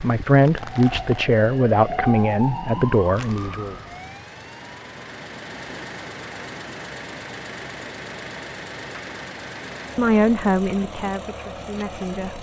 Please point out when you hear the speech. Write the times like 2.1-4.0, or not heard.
0.0-3.8, 9.9-12.3.